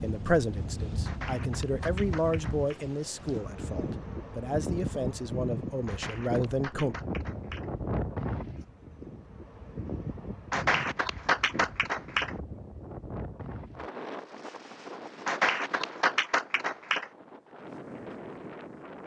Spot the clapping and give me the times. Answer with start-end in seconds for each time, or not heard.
1.1-2.8, 5.8-7.7, 10.5-12.3, 15.2-17.1.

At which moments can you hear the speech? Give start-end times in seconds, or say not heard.
0.0-7.0.